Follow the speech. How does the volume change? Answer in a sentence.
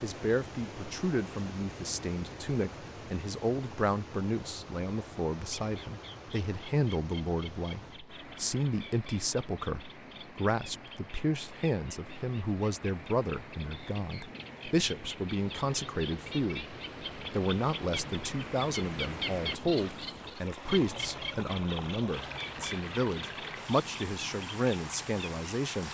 The loudness of the speech stays about the same.